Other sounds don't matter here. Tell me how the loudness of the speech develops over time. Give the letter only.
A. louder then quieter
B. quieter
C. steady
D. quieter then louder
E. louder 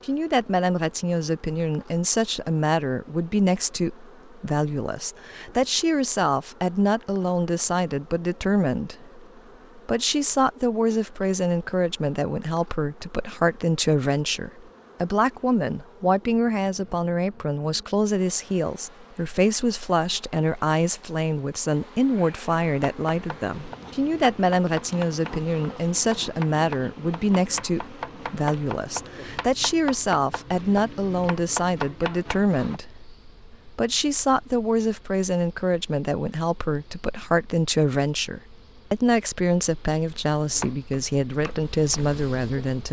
C.